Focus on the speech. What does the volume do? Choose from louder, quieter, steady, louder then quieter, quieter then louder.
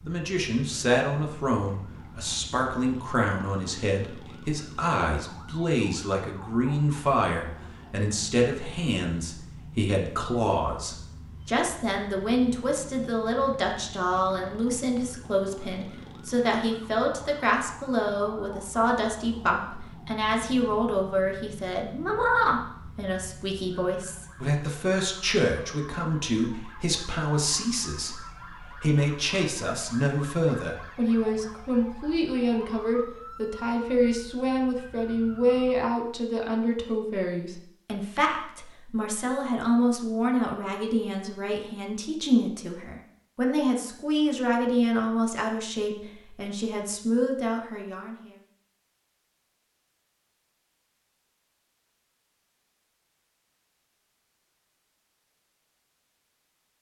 steady.